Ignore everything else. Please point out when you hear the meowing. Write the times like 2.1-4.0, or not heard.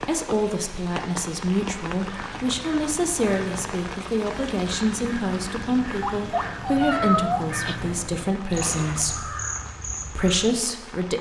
6.0-7.8.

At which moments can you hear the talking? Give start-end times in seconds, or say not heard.
0.0-9.3, 10.1-11.1.